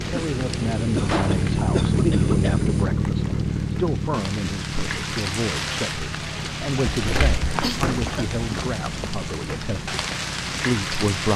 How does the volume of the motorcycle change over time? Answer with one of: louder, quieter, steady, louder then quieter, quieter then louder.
quieter.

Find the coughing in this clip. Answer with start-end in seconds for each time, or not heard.
0.1-2.9, 7.4-8.2.